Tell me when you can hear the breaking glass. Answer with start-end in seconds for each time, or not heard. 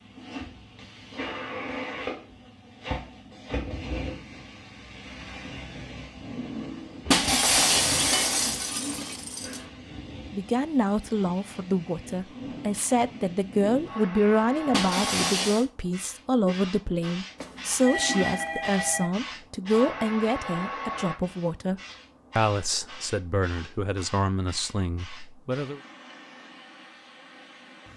7.1-9.6, 14.7-15.7.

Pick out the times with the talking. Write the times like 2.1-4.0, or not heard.
10.3-25.8.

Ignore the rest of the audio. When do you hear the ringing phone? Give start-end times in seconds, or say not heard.
17.4-19.1.